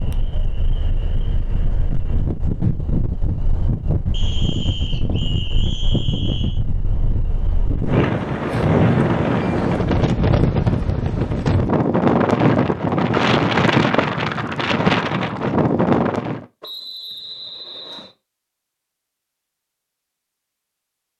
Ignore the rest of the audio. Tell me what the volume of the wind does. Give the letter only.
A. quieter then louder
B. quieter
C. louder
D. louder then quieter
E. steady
C.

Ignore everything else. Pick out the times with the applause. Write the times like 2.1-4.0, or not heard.
not heard.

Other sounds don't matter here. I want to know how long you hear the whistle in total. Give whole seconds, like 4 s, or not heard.
4 s.